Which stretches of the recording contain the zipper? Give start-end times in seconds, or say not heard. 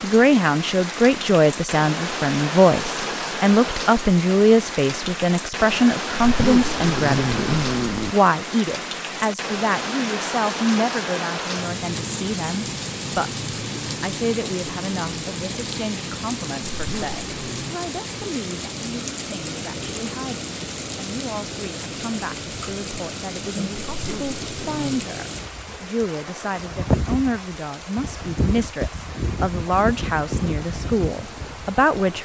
6.2-8.2, 16.7-17.8, 23.9-25.0.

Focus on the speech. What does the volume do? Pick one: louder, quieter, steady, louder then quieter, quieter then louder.
quieter then louder.